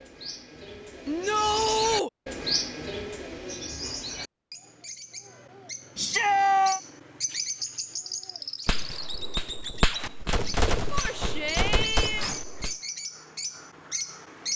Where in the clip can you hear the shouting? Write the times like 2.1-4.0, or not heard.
1.1-2.1, 6.0-6.8, 10.9-12.3.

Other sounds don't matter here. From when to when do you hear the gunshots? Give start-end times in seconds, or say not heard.
8.7-12.8.